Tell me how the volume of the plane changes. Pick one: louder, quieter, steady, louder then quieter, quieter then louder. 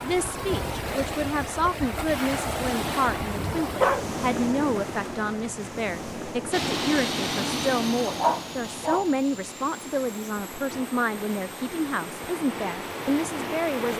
quieter.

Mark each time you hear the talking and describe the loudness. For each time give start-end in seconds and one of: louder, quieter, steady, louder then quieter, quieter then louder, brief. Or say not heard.
0.0-13.9 steady.